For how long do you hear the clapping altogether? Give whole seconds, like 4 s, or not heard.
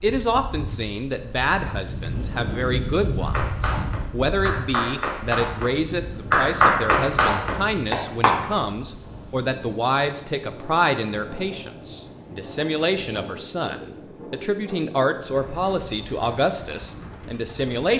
5 s.